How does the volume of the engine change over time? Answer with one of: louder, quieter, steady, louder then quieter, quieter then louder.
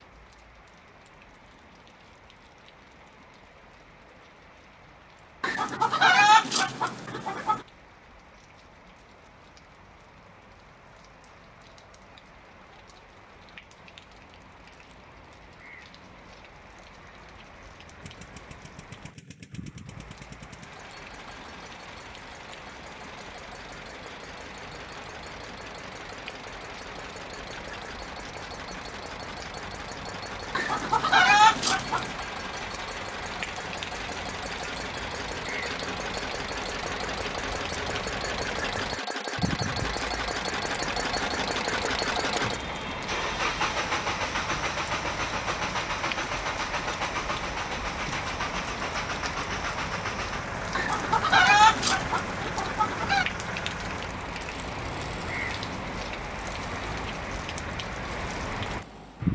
louder then quieter.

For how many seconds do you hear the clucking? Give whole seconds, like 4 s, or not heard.
6 s.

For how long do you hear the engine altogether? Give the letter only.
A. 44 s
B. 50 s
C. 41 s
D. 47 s
C.